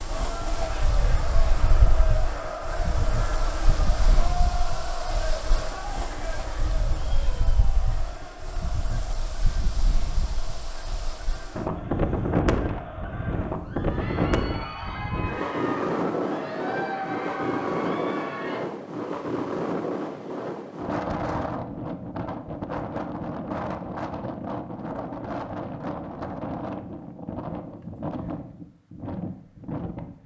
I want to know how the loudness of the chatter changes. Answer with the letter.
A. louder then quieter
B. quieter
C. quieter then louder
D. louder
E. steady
C.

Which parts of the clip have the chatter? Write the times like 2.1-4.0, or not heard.
0.0-18.6.